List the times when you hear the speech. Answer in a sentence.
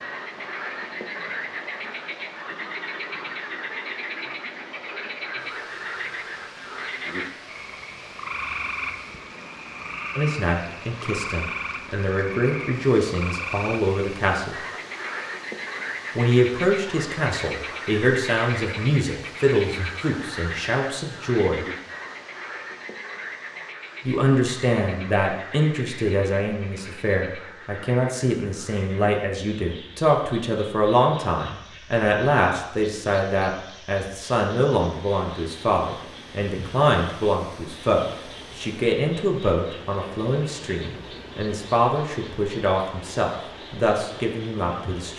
The speech can be heard from 10.2 to 14.6 s, from 16.1 to 21.6 s and from 24.1 to 45.1 s.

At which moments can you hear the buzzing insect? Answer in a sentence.
The buzzing insect can't be heard in this clip.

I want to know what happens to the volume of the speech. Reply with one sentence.
The loudness of the speech stays about the same.